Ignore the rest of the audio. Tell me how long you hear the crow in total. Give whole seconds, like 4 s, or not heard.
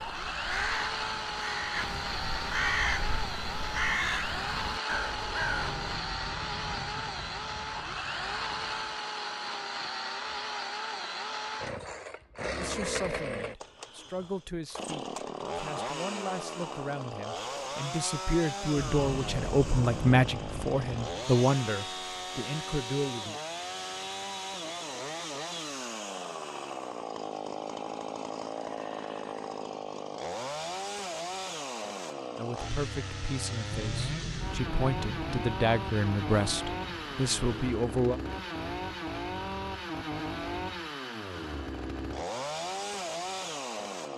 6 s.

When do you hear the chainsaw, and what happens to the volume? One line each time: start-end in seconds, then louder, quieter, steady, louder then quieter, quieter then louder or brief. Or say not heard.
0.0-44.1 steady.